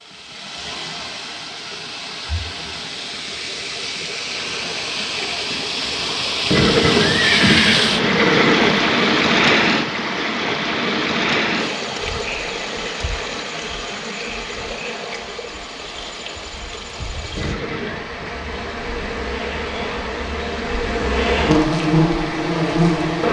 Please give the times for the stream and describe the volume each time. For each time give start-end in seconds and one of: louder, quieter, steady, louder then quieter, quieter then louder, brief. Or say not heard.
0.0-23.2 louder then quieter.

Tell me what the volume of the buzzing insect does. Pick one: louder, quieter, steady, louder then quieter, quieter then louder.
louder.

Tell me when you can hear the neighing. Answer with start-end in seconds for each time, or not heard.
6.5-8.9, 17.4-18.1.